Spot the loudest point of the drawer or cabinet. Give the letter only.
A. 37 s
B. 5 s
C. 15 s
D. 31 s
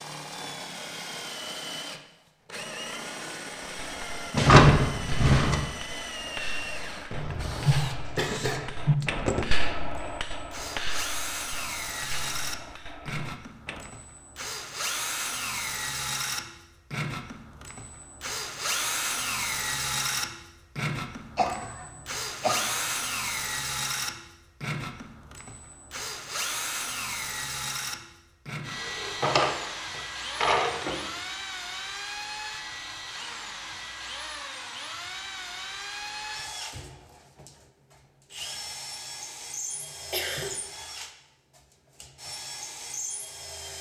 B.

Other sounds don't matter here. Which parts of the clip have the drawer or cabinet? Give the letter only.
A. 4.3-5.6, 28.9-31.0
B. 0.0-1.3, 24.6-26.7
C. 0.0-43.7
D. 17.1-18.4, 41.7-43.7
A.